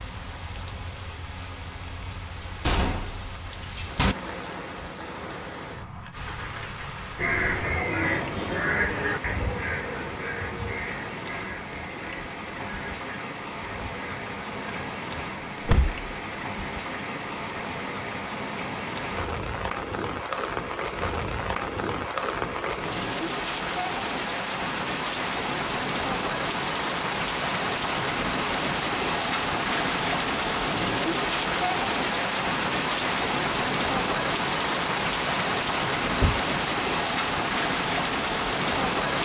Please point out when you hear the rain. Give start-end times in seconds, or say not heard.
0.0-39.2.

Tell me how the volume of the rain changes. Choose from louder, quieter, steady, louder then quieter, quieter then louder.
louder.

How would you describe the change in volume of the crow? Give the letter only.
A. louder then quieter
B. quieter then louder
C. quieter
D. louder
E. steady
C.